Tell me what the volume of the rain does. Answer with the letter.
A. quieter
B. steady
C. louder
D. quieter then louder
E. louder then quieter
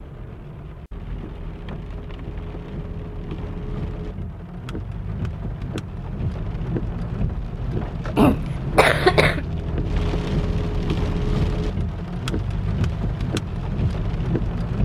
C.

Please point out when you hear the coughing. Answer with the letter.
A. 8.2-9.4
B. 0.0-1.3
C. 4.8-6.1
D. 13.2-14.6
A.